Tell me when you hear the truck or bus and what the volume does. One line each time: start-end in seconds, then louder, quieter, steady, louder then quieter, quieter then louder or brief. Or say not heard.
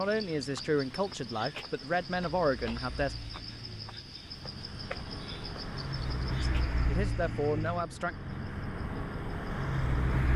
0.0-10.3 louder.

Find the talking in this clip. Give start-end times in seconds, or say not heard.
0.0-3.1, 6.4-8.2.